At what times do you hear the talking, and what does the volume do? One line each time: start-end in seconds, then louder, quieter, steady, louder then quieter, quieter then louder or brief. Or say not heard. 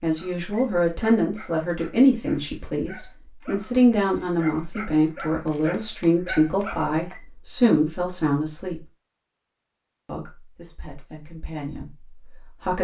0.0-8.8 steady
10.1-12.7 brief.